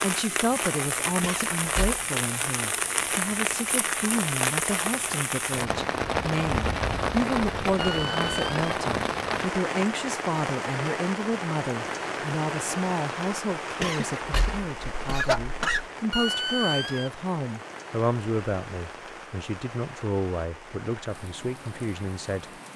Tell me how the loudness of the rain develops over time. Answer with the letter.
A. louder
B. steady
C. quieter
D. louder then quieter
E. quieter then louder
C.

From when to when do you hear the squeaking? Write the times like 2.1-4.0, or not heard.
7.8-8.6, 16.1-17.1.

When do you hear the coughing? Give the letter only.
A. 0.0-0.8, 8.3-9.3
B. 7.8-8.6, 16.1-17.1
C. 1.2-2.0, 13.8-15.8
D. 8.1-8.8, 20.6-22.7
C.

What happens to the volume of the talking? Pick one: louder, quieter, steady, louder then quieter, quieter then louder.
steady.